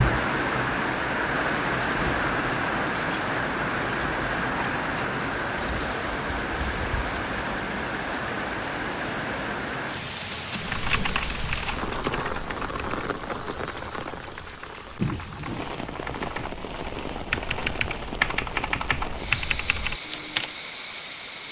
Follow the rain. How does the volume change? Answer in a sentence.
The volume of the rain goes down.